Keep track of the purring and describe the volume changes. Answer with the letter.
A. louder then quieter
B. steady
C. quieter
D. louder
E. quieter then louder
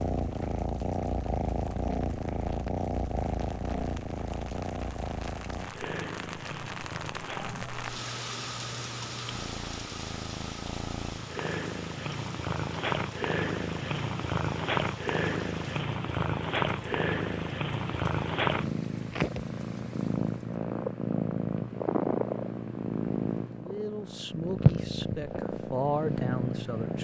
E.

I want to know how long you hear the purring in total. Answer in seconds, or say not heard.
27 s.